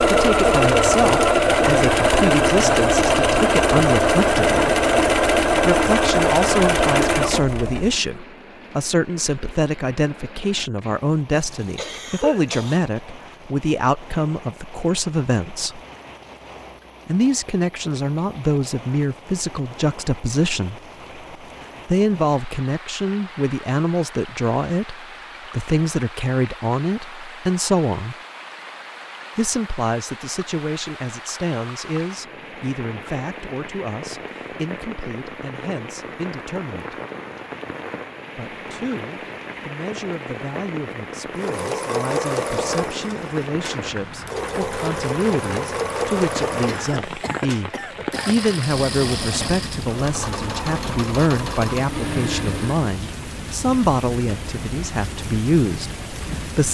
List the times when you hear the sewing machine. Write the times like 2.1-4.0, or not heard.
0.0-8.0, 41.3-53.0.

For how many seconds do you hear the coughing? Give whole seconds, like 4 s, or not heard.
3 s.